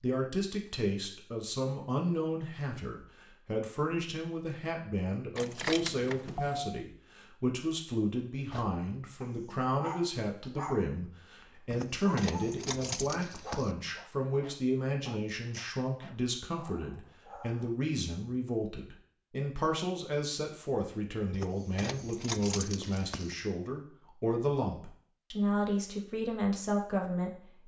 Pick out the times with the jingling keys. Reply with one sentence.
You can hear the jingling keys from 5.3 to 6.8 s, from 11.7 to 13.8 s and from 21.3 to 23.4 s.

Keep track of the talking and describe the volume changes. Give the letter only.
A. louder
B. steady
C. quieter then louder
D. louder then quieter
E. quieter
B.